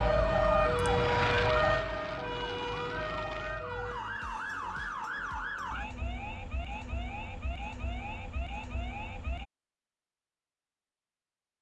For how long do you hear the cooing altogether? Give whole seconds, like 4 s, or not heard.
not heard.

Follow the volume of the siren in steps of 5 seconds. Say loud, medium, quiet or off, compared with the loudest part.
loud, medium, off.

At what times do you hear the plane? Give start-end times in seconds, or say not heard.
0.0-3.7.